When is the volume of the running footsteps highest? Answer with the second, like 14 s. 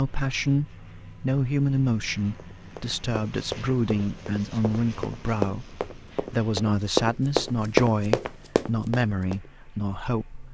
8 s.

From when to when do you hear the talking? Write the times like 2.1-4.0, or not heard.
0.0-10.4.